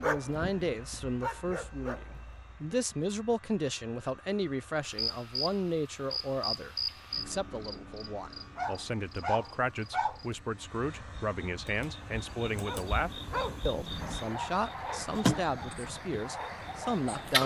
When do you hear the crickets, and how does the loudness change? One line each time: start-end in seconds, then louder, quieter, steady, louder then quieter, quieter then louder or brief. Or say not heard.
4.8-17.4 quieter then louder.